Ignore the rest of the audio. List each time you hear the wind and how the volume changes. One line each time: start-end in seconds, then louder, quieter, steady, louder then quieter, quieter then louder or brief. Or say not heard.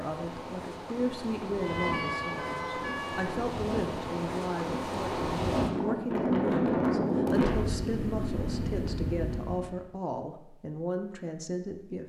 0.0-9.8 louder then quieter.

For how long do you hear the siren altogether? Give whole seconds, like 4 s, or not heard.
2 s.